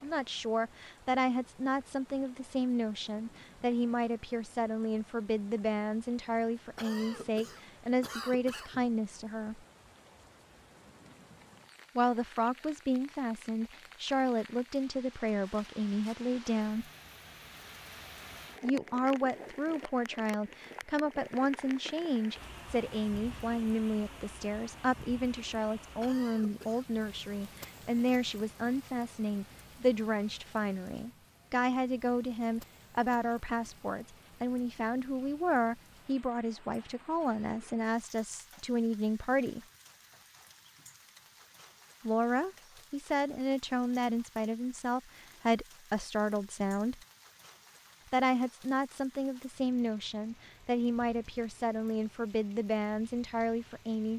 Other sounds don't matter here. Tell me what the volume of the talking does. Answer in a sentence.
The loudness of the talking stays about the same.